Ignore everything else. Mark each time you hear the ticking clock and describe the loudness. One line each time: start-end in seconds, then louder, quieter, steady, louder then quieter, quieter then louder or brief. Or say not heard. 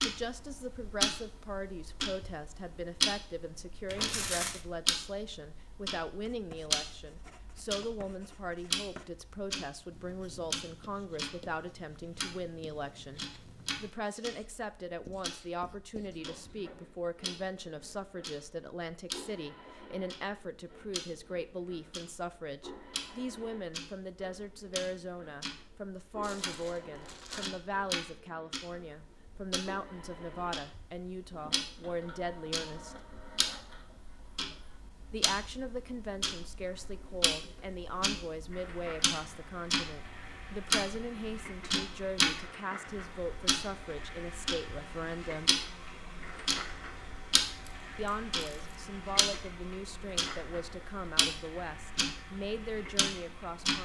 0.0-53.7 quieter then louder.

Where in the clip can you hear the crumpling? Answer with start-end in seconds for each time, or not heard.
3.9-4.7, 26.2-27.5, 47.6-48.8.